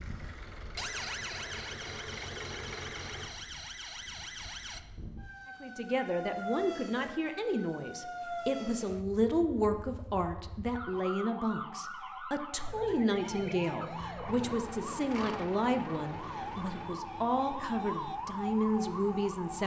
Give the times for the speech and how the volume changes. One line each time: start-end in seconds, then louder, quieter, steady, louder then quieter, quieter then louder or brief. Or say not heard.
5.6-19.6 steady.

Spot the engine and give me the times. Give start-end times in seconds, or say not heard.
0.0-3.3, 14.2-16.9.